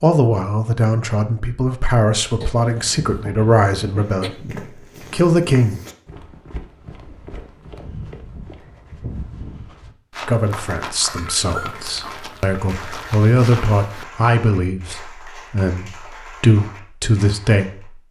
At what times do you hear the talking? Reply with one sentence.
You can hear the talking from 0.0 to 5.8 s and from 10.2 to 18.0 s.